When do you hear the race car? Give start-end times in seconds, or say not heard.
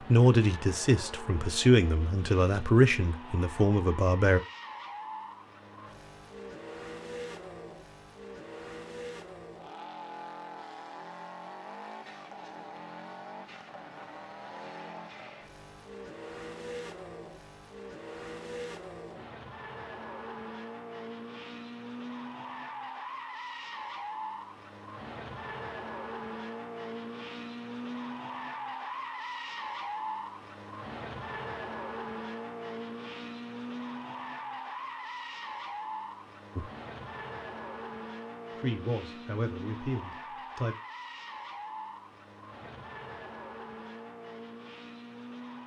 0.0-45.6.